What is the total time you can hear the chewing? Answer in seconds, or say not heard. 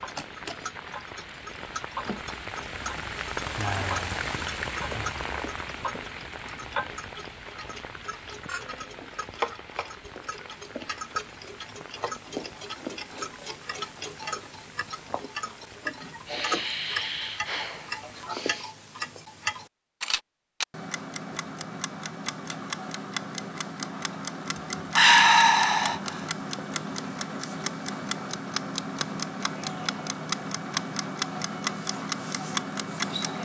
not heard.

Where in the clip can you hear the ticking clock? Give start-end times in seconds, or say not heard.
0.0-33.3.